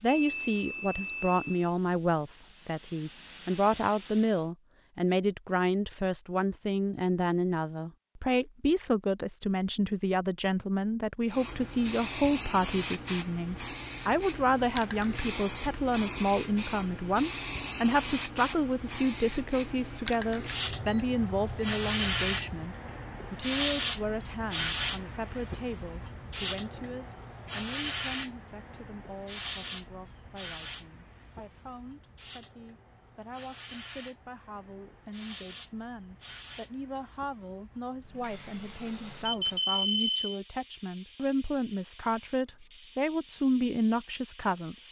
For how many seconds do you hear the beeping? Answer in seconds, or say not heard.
5 s.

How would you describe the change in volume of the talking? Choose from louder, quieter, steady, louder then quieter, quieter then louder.
quieter then louder.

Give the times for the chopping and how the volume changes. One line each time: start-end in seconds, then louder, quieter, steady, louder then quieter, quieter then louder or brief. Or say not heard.
not heard.